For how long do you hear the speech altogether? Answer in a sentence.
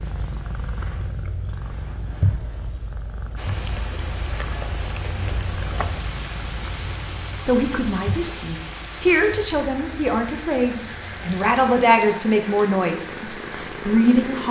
You can hear the speech for 7 seconds altogether.